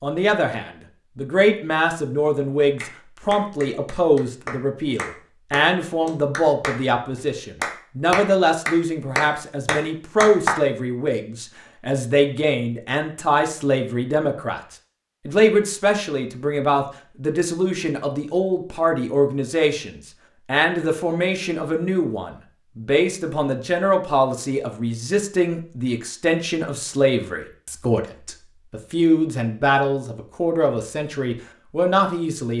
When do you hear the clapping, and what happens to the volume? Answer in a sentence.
The clapping can be heard from 2.8 to 6.8 s, at a steady volume; and briefly from 7.6 to 10.6 s.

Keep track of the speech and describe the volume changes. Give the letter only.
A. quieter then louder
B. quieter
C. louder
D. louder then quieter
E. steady
E.